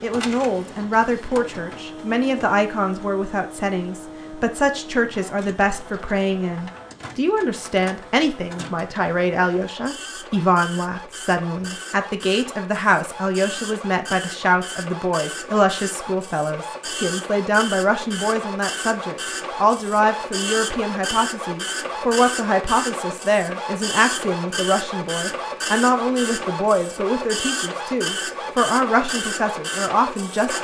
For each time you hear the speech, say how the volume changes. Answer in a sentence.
You can hear the speech from 0.0 to 30.5 s, at a steady volume.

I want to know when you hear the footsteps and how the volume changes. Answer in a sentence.
You can't hear the footsteps here.